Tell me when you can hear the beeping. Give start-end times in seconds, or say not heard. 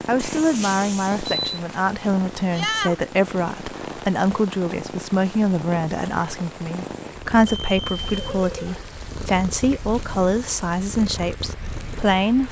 0.1-1.4, 7.5-8.9.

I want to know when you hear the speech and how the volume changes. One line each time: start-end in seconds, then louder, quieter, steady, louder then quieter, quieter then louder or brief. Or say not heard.
0.1-12.4 steady.